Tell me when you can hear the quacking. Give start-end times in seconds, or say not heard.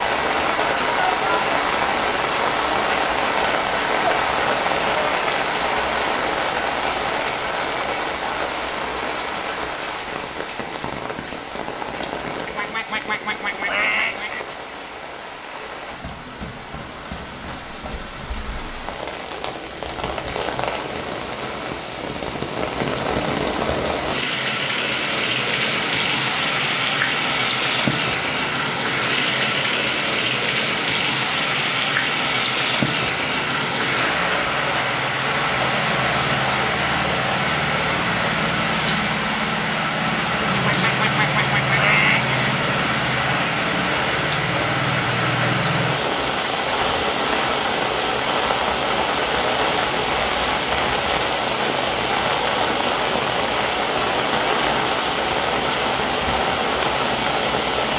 12.4-14.4, 40.5-42.4.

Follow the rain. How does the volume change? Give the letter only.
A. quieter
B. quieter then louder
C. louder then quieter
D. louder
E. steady
B.